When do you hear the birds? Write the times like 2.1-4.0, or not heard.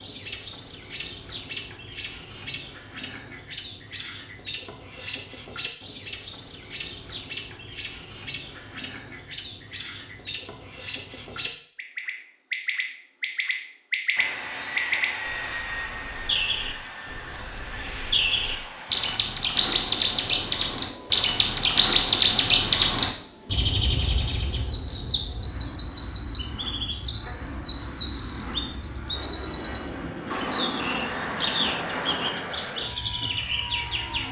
0.0-34.2.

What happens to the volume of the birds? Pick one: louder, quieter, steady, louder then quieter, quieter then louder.
louder then quieter.